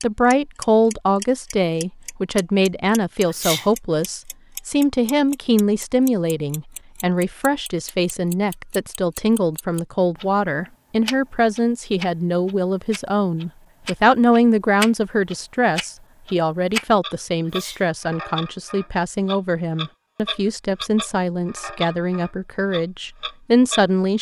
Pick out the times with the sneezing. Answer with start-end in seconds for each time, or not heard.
3.2-3.7, 17.4-17.9.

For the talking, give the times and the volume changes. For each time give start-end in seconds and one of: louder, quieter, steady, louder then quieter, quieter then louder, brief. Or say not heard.
0.0-24.1 steady.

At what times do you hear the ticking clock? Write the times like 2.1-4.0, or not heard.
0.0-23.9.